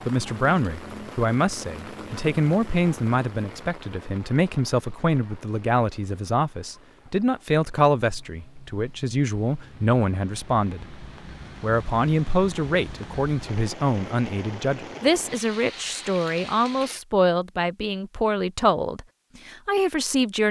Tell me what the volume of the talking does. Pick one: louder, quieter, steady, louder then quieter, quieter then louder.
steady.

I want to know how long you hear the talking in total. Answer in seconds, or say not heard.
20 s.